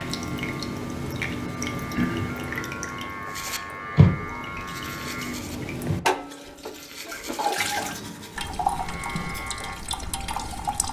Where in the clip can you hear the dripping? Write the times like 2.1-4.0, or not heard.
0.0-10.8.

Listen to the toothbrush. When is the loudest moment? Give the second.
4 s.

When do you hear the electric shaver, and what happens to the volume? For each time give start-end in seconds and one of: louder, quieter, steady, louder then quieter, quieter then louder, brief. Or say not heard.
0.0-5.5 louder
8.8-10.6 brief.